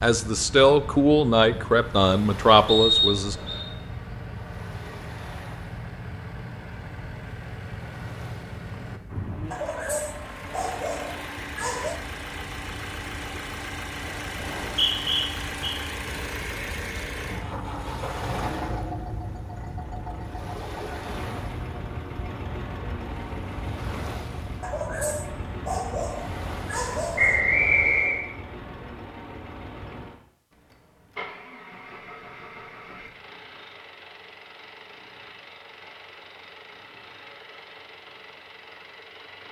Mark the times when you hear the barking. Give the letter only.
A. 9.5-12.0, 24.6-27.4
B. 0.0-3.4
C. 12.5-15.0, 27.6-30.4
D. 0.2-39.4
A.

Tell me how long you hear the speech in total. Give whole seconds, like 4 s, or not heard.
3 s.